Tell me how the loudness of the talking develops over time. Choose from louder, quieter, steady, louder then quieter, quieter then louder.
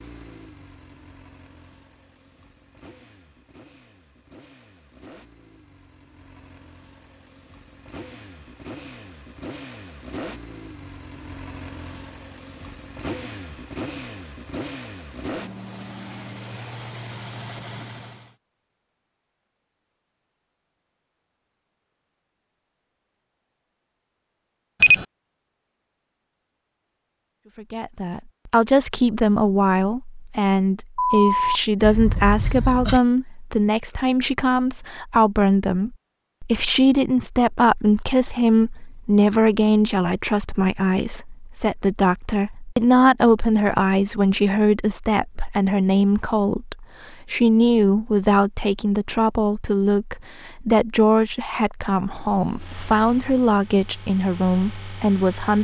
steady.